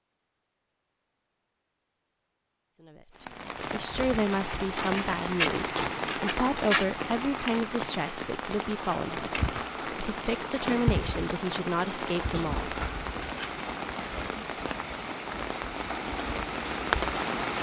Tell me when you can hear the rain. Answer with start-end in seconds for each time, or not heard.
3.1-17.5.